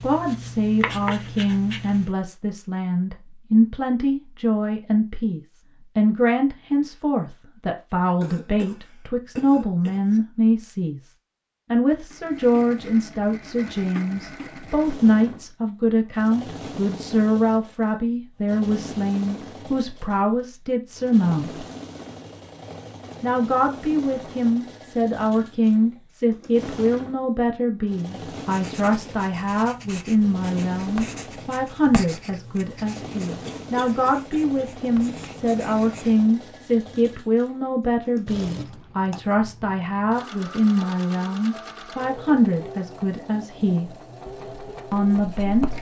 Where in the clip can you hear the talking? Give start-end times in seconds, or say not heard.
0.0-11.1, 11.7-21.6, 23.2-43.9, 44.9-45.7.